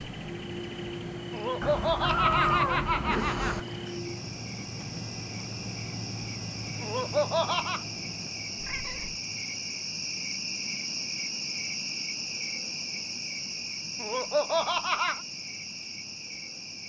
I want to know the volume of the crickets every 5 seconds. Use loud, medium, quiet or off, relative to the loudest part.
medium, loud, loud, medium.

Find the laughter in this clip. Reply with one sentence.
The laughter can be heard from 1.3 to 3.6 s, from 6.8 to 7.8 s and from 14.0 to 15.2 s.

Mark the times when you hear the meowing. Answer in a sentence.
You can hear the meowing from 1.6 to 3.6 s and from 8.6 to 9.2 s.